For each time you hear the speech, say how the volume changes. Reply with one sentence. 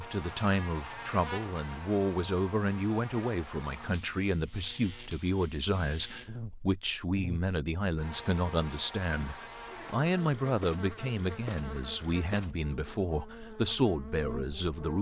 You can hear the speech from 0.0 to 14.9 s, at a steady volume.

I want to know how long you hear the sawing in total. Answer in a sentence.
You can't hear the sawing here.